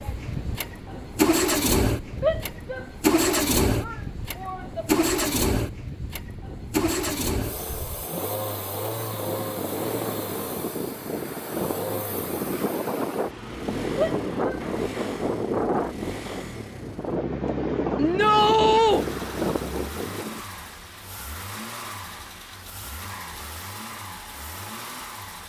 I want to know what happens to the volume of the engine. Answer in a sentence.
The loudness of the engine goes down.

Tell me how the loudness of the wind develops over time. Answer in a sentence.
The volume of the wind goes up.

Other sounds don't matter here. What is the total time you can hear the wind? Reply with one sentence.
The wind can be heard for 20 seconds in total.